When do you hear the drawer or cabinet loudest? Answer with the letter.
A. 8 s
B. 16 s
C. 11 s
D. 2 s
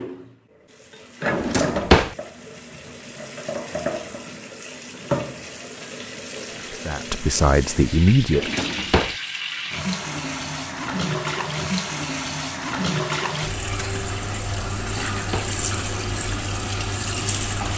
D.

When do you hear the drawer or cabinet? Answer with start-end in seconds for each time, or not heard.
1.3-2.1, 8.3-9.2, 14.8-15.6.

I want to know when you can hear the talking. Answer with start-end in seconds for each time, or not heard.
6.7-8.5.